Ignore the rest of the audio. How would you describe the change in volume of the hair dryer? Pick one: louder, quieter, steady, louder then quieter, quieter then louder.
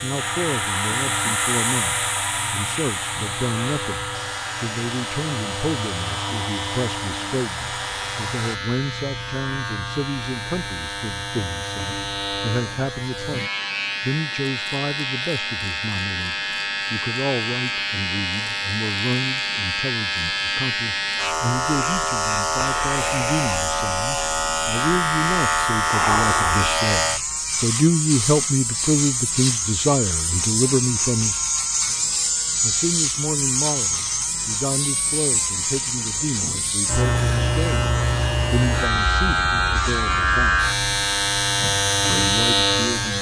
quieter.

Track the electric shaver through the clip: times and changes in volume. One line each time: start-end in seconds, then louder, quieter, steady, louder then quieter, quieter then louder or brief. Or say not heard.
0.0-43.1 louder.